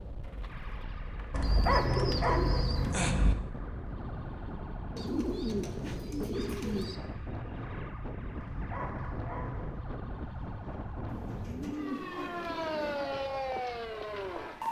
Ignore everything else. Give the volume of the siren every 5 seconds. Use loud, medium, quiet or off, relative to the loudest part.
quiet, quiet, loud.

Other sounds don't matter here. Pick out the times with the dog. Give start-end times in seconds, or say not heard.
1.3-3.4, 8.3-9.9.